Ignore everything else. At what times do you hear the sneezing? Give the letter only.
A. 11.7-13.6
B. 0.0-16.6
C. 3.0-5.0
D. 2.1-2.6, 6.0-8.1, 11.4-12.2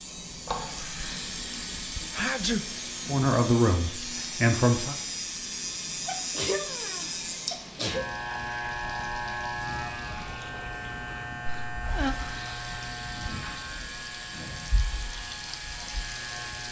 D.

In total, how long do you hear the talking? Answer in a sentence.
You can hear the talking for 2 seconds altogether.